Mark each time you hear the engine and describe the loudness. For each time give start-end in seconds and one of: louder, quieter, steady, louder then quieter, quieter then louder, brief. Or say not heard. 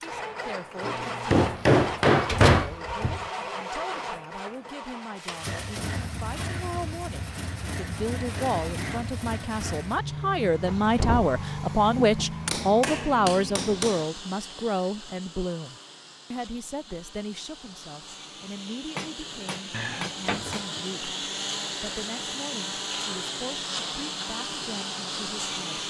0.0-25.8 quieter then louder.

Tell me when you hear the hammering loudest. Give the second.
2 s.